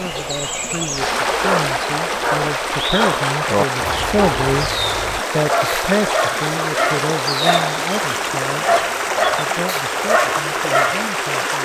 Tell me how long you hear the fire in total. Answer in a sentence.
The fire can't be heard in this clip.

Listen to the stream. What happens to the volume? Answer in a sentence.
The loudness of the stream stays about the same.